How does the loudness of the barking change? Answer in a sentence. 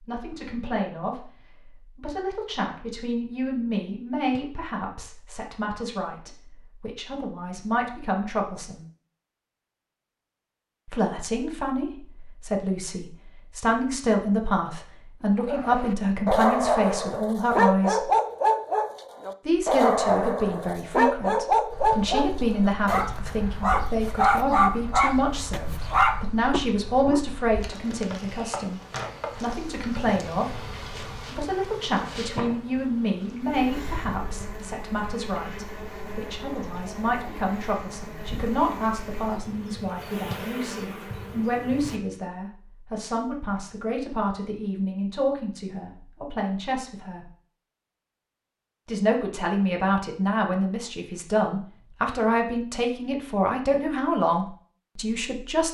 The volume of the barking stays about the same.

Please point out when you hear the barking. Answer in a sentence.
You can hear the barking from 15.4 to 27.2 s.